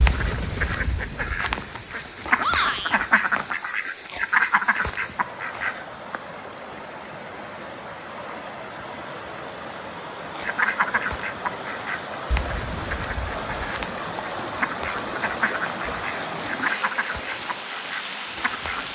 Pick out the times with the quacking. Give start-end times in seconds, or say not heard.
0.0-5.8, 10.3-18.9.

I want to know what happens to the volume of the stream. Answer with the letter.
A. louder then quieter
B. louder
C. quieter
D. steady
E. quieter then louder
B.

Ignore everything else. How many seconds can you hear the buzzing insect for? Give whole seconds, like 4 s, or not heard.
not heard.